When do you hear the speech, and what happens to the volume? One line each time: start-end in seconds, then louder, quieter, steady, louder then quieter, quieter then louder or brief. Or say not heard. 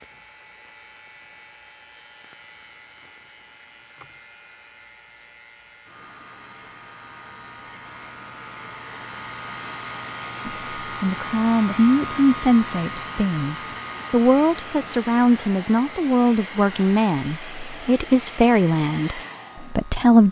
10.4-20.2 steady.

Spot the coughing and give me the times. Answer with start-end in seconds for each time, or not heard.
not heard.